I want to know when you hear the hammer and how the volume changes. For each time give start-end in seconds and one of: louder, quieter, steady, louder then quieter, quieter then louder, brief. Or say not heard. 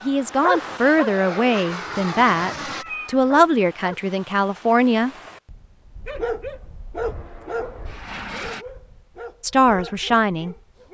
not heard.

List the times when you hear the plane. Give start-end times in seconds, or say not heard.
0.0-2.9, 7.0-8.7.